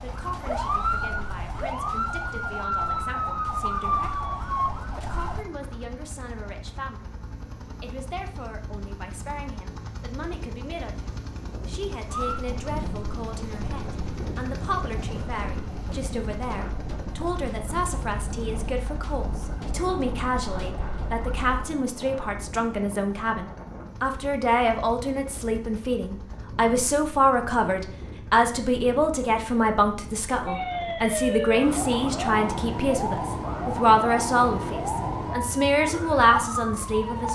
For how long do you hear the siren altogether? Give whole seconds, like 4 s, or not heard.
22 s.